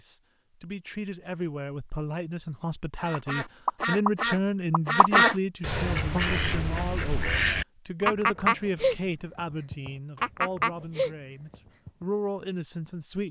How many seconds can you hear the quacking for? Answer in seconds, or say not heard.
9 s.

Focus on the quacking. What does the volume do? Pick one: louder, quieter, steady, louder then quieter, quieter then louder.
steady.